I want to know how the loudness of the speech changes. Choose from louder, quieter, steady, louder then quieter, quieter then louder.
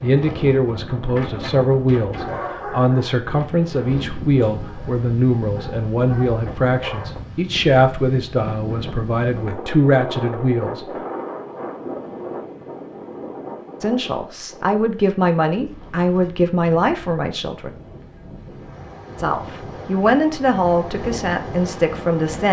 steady.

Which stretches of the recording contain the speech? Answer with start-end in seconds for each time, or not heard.
0.0-10.8, 13.8-17.7, 19.1-22.4.